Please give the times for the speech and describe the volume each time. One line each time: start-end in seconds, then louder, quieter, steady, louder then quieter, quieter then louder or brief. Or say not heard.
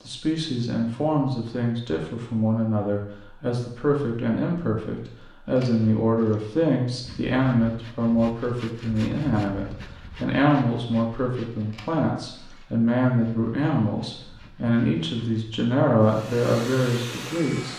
0.1-17.7 steady.